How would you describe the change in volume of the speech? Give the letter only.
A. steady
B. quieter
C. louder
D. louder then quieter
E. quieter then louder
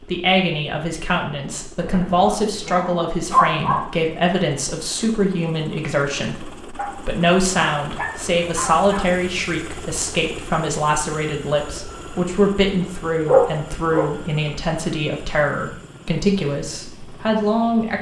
A.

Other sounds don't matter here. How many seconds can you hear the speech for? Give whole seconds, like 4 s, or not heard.
18 s.